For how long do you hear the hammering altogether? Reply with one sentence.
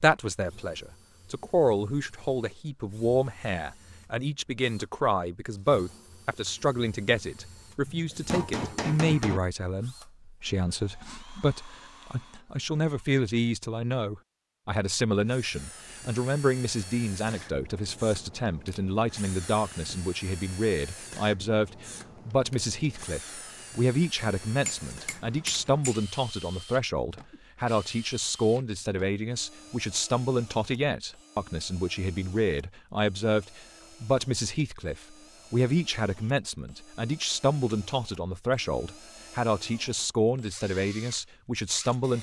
You can hear the hammering for 3 seconds altogether.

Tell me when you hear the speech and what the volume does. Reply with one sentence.
The speech can be heard from 0.0 to 42.1 s, at a steady volume.